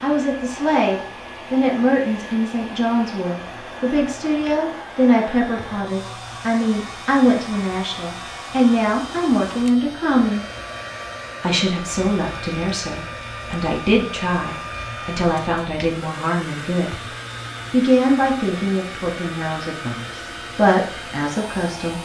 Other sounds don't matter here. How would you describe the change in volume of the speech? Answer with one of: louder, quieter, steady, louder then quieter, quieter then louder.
steady.